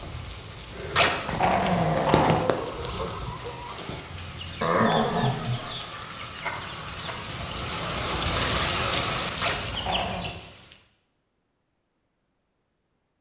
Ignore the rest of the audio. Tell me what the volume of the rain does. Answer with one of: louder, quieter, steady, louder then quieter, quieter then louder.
louder.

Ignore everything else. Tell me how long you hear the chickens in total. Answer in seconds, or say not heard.
10 s.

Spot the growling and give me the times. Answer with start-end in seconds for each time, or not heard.
0.9-2.4, 4.6-5.8, 9.4-10.3.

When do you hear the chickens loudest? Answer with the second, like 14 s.
2 s.